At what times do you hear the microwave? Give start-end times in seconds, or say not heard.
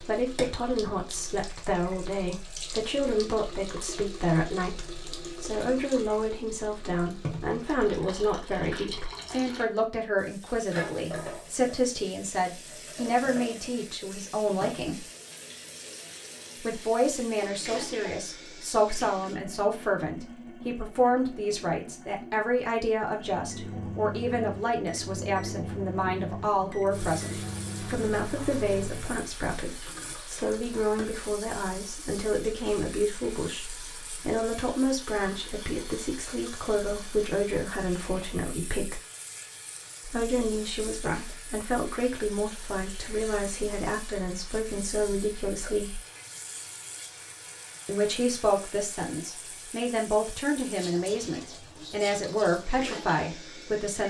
23.3-29.4.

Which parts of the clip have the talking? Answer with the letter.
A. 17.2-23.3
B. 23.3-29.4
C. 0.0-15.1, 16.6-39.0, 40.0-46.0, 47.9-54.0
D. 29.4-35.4
C.